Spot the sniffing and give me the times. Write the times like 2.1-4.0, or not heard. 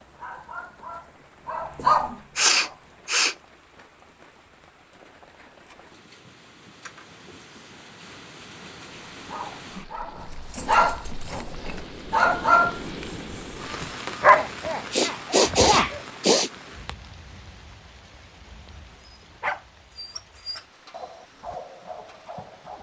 2.4-3.4, 14.9-16.9.